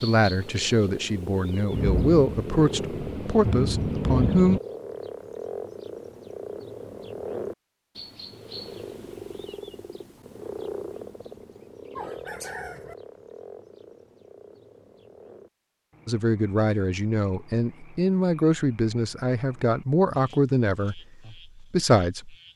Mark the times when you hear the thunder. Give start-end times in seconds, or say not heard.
1.7-4.6.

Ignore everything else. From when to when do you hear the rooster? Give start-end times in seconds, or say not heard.
11.9-12.9.